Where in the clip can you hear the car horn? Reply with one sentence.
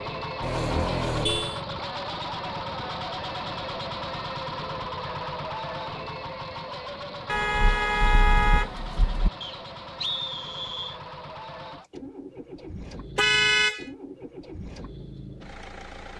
The car horn can be heard from 0.4 to 1.6 s, from 7.2 to 9.3 s and from 13.2 to 13.8 s.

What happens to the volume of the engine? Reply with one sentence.
The loudness of the engine goes down.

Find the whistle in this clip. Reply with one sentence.
The whistle can be heard from 9.4 to 11.0 s.